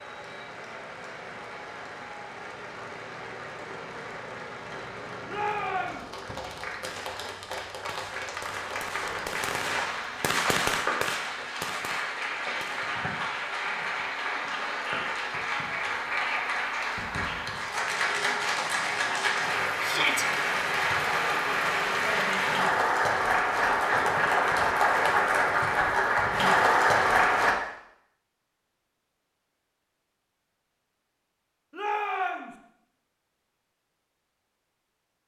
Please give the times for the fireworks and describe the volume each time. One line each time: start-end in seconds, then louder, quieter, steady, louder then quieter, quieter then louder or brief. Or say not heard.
6.2-12.9 louder then quieter.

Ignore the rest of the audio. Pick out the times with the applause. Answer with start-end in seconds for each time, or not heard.
0.0-27.6.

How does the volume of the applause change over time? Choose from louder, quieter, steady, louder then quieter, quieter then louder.
louder.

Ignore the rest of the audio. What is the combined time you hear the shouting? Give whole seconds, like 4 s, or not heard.
2 s.